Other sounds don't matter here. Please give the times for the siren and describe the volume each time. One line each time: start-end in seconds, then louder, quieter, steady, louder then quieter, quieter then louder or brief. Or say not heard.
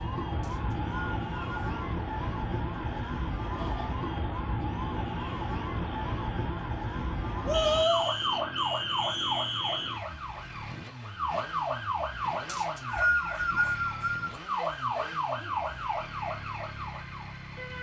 0.0-17.7 steady.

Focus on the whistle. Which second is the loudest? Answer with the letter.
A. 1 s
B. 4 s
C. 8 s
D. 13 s
D.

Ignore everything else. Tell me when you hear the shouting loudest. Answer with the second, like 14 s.
8 s.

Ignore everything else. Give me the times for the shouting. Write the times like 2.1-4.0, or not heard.
3.5-4.0, 7.5-8.1, 14.6-15.8.